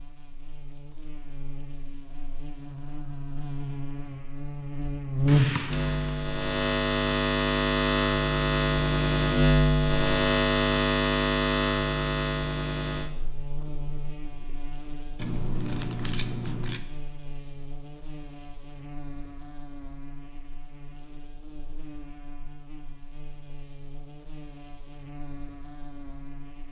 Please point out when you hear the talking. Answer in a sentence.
The talking can't be heard in this clip.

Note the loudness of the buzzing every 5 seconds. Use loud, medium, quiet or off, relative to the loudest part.
quiet, loud, loud, quiet, quiet, quiet.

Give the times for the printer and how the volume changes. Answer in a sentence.
The printer can't be heard in this clip.